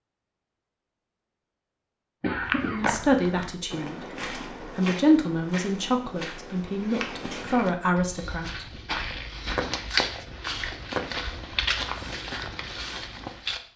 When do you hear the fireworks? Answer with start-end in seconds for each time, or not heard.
9.3-9.8, 10.8-11.2, 11.8-13.1.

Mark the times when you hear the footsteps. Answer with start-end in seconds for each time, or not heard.
2.3-13.6.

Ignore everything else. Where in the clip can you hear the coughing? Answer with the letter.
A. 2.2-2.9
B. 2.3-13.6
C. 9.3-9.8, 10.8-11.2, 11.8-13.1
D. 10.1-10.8
A.